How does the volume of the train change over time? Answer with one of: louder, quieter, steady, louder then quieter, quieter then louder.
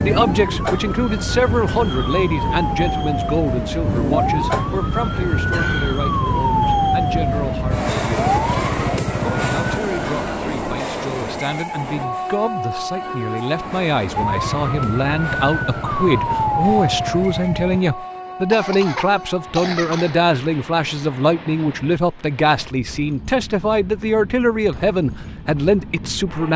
quieter.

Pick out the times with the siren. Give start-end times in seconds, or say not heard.
0.0-9.8, 14.2-17.8.